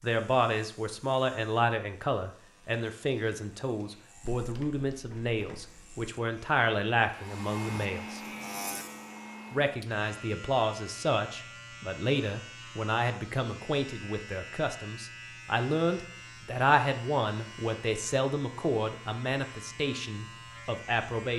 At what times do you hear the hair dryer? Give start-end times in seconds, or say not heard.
7.0-9.8.